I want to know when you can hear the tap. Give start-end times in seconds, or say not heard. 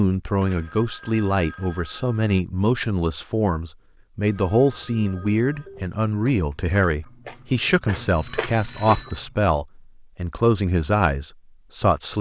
not heard.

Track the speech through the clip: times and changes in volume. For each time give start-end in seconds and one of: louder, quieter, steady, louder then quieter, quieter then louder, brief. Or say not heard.
0.0-12.1 steady.